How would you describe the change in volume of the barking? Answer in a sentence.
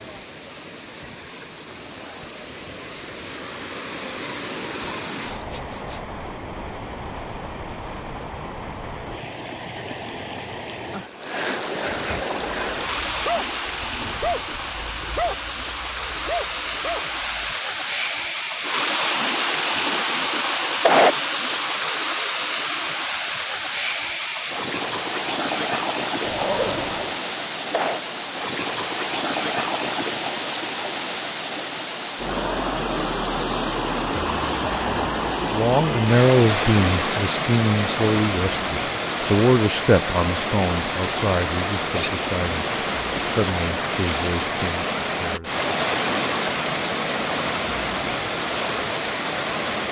The volume of the barking goes down, then up.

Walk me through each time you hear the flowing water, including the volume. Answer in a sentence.
You can hear the flowing water from 0.0 to 49.8 s, getting louder.